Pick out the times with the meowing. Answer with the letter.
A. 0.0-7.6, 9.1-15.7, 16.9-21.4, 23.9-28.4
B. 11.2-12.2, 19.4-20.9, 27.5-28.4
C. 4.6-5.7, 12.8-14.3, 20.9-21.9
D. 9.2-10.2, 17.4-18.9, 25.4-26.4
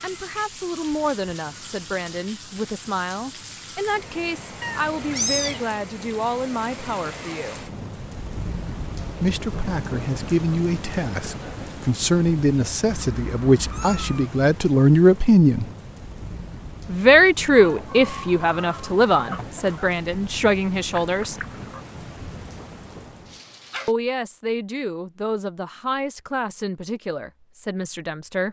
C.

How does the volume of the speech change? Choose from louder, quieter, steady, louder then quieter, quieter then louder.
louder then quieter.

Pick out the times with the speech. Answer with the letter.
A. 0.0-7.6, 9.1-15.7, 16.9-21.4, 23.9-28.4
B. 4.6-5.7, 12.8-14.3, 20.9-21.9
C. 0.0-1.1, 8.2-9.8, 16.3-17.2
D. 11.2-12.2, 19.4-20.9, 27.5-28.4
A.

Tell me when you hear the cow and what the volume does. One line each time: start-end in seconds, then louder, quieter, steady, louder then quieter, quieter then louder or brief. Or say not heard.
not heard.